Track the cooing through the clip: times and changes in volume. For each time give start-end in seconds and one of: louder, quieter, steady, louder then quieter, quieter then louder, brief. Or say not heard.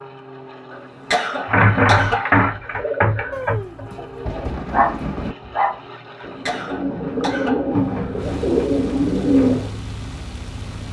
1.4-9.8 quieter then louder.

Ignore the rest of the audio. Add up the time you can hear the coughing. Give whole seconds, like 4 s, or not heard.
3 s.